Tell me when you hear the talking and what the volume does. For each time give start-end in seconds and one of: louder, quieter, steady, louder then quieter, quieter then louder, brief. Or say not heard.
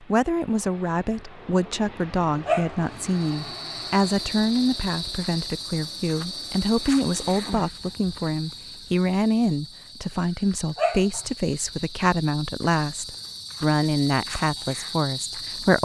0.0-15.8 steady.